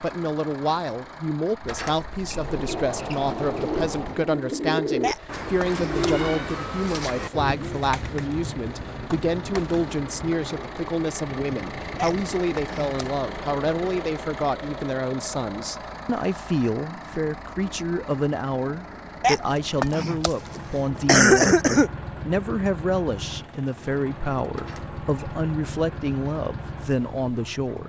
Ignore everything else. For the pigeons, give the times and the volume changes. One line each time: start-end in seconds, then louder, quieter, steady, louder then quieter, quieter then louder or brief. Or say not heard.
2.5-10.9 quieter.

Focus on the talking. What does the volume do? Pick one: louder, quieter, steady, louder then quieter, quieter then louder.
steady.